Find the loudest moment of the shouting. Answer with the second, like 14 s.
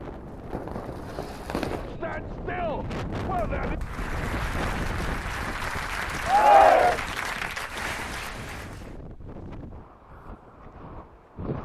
7 s.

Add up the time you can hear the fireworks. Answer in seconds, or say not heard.
2 s.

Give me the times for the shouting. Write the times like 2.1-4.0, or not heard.
1.9-3.8, 6.2-7.0.